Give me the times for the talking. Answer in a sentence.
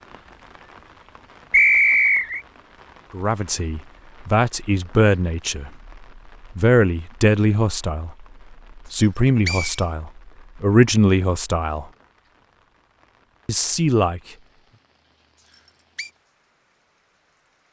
You can hear the talking from 3.1 to 11.8 s and from 13.4 to 14.2 s.